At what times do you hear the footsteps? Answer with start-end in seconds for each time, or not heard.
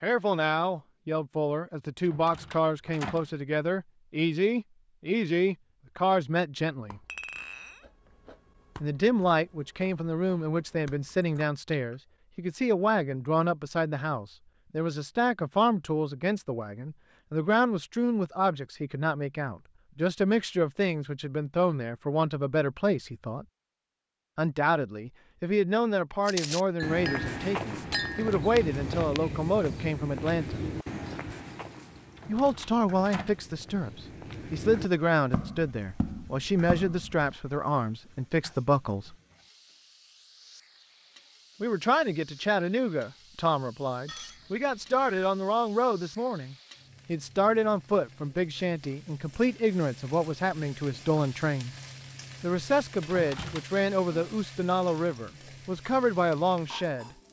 26.2-37.4.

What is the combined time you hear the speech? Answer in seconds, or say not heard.
50 s.